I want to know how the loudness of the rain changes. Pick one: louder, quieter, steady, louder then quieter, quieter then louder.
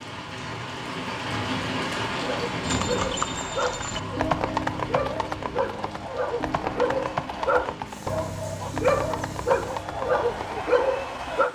quieter.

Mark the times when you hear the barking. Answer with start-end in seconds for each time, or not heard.
2.1-11.5.